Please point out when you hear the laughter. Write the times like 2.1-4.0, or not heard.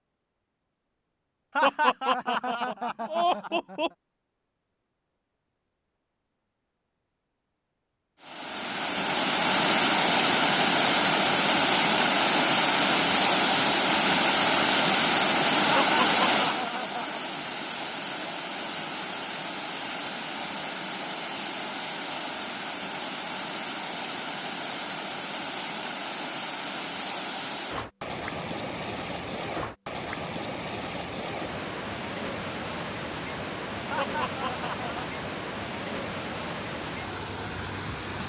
1.6-3.9, 15.7-17.2, 33.9-35.1.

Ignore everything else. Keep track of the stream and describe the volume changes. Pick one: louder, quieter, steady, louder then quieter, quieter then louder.
quieter.